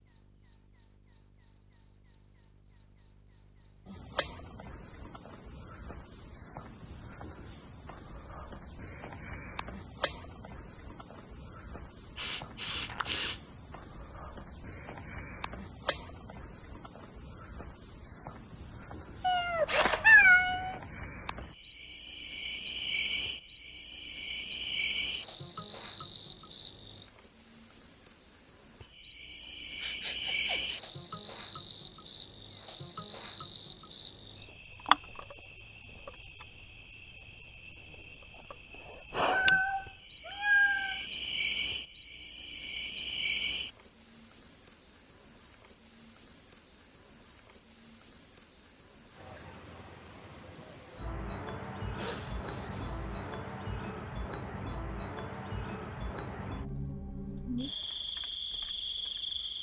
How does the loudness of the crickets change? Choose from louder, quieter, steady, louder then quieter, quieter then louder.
steady.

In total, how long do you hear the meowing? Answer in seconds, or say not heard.
3 s.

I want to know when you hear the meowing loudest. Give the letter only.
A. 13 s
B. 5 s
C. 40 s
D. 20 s
D.